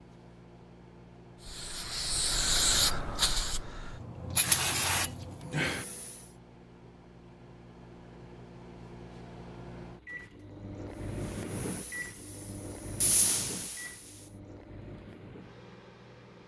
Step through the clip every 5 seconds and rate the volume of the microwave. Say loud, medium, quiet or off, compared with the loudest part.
medium, medium, loud, medium.